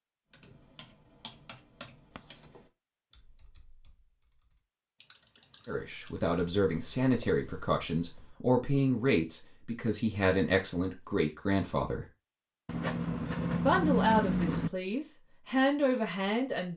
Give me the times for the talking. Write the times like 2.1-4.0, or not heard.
5.7-12.1, 13.5-16.7.